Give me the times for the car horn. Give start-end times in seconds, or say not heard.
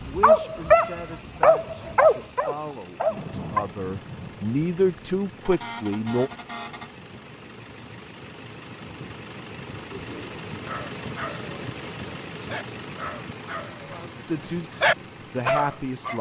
5.5-7.0.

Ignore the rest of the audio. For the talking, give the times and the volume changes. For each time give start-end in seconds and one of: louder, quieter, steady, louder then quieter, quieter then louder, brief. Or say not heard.
0.0-6.3 louder
13.8-16.1 brief.